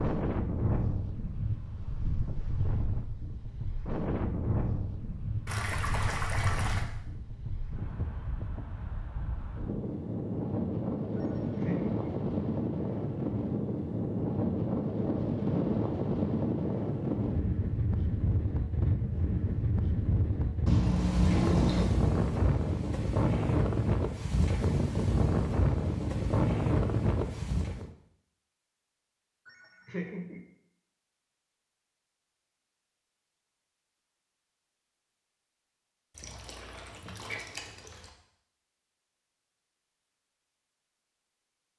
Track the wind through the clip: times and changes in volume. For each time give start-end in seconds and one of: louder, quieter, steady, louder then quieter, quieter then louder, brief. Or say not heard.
0.0-27.9 louder.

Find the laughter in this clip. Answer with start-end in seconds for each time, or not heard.
11.2-12.0, 29.4-30.4.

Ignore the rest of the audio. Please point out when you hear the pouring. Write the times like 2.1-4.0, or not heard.
5.5-6.8, 20.6-21.9, 36.1-38.1.